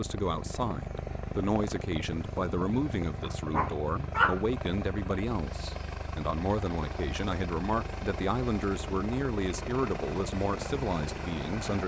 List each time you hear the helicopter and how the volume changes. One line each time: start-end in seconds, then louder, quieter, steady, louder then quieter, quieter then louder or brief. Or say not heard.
0.0-11.8 steady.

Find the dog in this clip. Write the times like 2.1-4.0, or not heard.
3.2-4.4.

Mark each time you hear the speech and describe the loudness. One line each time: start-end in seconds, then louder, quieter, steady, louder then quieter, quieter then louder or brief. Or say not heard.
0.0-11.8 steady.